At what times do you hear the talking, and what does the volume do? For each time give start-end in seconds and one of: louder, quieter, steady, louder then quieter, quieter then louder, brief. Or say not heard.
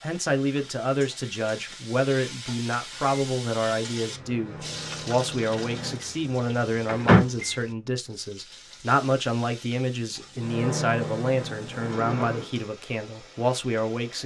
0.0-14.2 steady.